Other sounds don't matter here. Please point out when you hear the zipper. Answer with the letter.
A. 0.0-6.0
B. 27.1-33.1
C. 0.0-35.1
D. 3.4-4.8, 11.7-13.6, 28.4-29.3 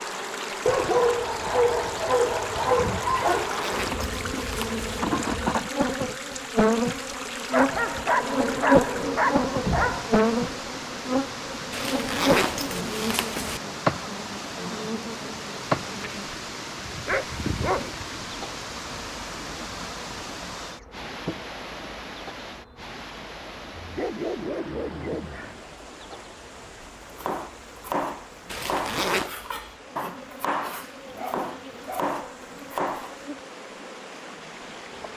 D.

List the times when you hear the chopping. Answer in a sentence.
You can hear the chopping from 27.1 to 33.1 s.